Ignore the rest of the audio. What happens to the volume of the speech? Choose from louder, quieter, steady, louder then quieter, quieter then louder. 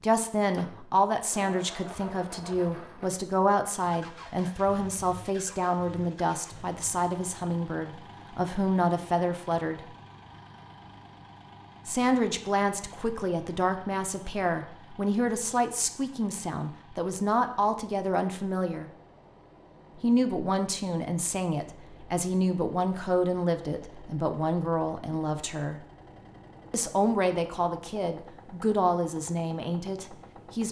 steady.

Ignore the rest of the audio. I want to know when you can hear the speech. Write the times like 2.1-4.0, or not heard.
0.0-9.8, 11.8-18.9, 20.0-25.8, 26.7-30.6.